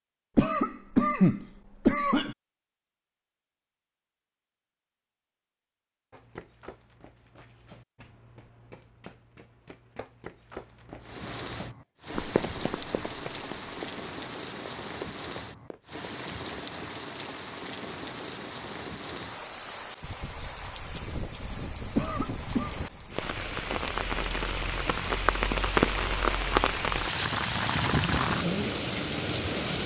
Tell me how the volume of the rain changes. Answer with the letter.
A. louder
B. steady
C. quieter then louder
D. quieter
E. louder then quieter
A.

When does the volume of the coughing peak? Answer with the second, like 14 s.
1 s.